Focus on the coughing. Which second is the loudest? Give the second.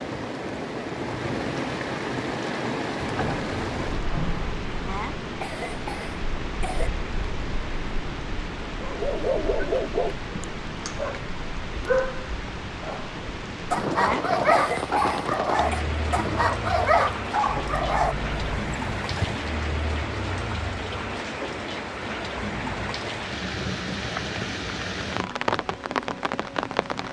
14 s.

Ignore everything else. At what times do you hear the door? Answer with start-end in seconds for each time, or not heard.
3.0-5.0, 17.4-18.7.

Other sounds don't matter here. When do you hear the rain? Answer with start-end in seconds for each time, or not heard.
0.0-27.0.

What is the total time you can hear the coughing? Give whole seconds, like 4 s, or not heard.
4 s.